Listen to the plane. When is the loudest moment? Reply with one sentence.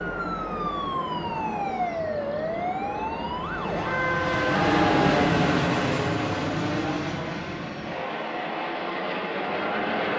The volume of the plane peaks at 5 seconds.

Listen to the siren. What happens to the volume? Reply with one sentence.
The loudness of the siren stays about the same.